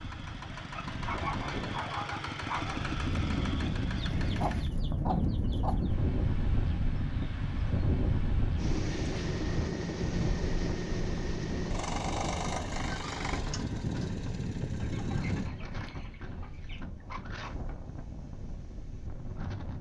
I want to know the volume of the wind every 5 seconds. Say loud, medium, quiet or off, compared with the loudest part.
loud, loud, medium, medium.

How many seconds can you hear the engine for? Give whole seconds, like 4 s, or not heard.
12 s.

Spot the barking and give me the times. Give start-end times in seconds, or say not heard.
0.7-2.8.